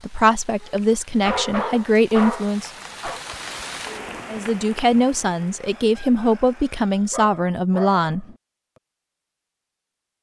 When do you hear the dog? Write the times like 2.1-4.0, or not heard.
0.6-3.2, 7.1-8.3.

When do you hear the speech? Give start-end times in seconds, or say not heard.
0.0-2.7, 4.2-8.2.